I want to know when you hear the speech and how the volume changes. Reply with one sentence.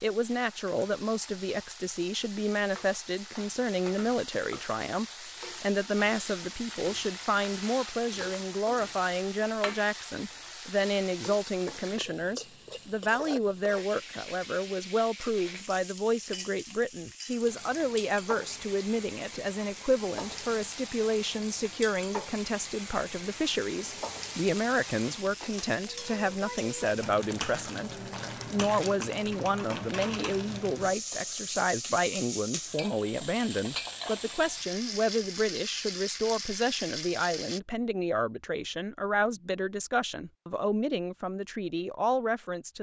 The speech can be heard from 0.0 to 42.7 s, at a steady volume.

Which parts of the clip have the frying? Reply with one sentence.
You can hear the frying from 0.0 to 37.6 s.